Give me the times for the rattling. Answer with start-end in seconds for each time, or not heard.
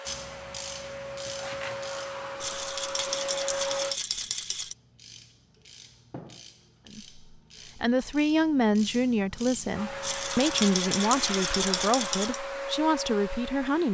2.4-4.8, 10.0-12.4.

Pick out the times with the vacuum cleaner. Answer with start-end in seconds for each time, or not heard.
0.0-4.0, 9.7-13.9.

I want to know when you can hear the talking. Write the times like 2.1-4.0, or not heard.
6.9-13.9.